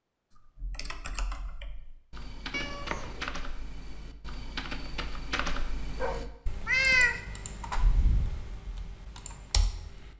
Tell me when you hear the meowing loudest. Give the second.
7 s.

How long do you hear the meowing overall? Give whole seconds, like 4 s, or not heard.
2 s.